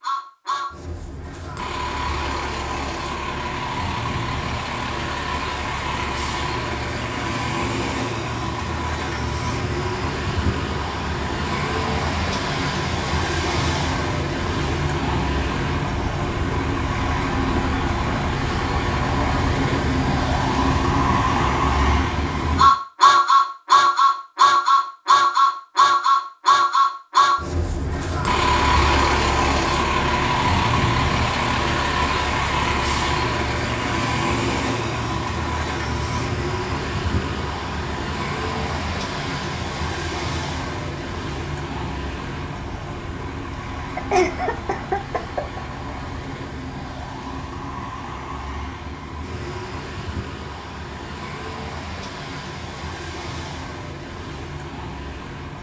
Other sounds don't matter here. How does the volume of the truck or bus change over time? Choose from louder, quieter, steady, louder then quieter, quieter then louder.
louder then quieter.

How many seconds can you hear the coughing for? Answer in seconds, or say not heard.
2 s.